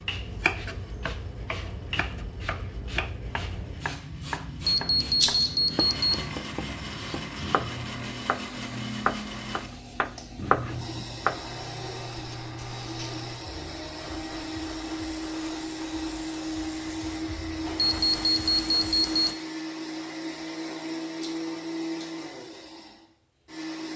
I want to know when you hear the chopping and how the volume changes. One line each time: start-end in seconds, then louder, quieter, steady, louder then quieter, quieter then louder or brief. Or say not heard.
0.1-11.6 louder.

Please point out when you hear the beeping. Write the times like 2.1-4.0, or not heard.
4.7-6.2, 17.8-19.4.